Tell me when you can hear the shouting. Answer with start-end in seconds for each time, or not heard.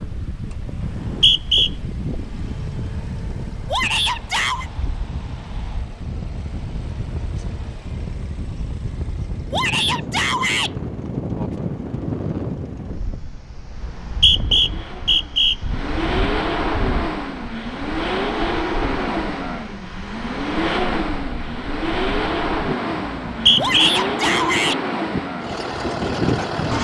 3.7-4.7, 9.5-10.7, 23.6-24.8.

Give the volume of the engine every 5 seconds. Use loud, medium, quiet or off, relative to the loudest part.
quiet, quiet, quiet, loud, loud, loud.